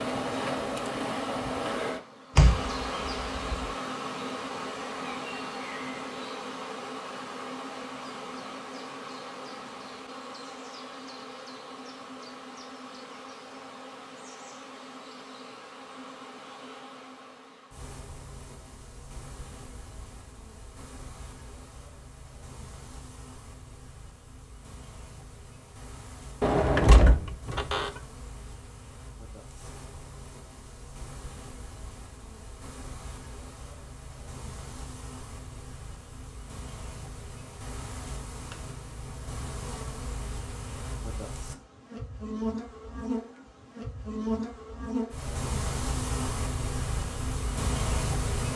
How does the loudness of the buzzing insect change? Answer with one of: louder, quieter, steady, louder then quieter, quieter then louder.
quieter then louder.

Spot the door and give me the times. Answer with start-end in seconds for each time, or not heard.
2.4-3.7, 26.4-28.0.